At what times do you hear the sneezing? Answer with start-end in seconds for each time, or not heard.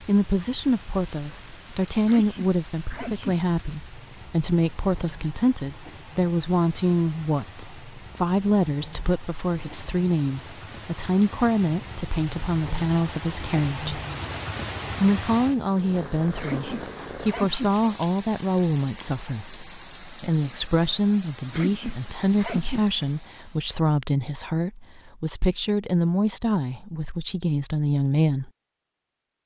2.0-3.4, 16.4-17.8, 21.5-22.9.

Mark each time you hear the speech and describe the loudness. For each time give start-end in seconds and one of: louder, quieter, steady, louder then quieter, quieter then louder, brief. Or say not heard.
0.1-14.0 steady
14.9-28.5 steady.